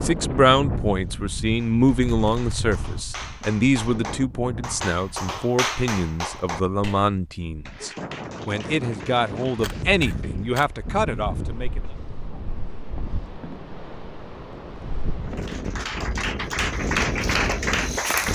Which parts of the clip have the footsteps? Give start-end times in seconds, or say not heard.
16.6-18.2.